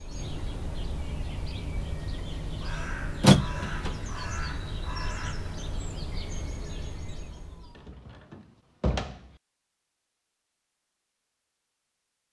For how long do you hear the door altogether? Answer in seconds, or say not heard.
2 s.